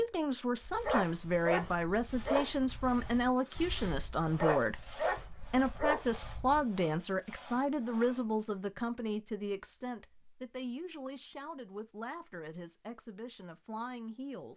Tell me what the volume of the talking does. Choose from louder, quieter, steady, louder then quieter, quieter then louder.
quieter.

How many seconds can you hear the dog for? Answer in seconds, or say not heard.
6 s.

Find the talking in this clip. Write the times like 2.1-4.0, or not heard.
0.0-14.5.